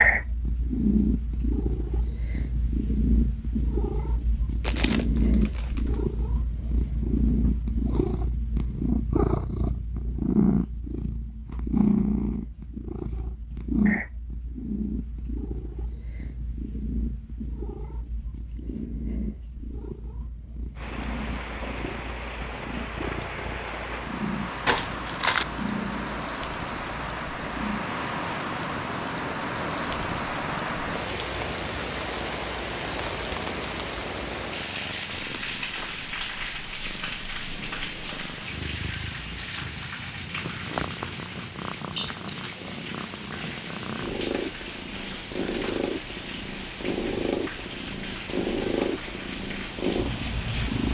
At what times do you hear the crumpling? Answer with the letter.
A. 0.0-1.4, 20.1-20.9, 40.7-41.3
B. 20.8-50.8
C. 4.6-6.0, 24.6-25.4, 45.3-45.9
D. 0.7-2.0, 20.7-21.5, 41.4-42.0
C.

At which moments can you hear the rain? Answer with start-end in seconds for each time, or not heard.
20.8-50.8.